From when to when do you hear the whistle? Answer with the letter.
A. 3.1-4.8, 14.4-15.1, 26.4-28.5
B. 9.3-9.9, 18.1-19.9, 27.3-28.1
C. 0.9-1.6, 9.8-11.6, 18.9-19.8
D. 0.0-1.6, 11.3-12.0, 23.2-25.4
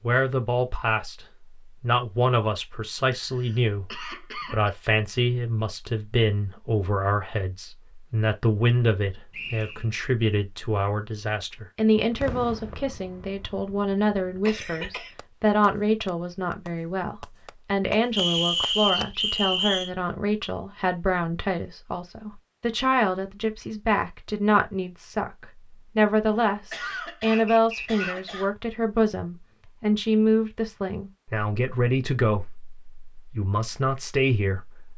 B.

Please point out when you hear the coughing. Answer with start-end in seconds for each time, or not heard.
3.1-4.8, 14.4-15.1, 26.4-28.5.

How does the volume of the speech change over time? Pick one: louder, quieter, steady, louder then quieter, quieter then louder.
steady.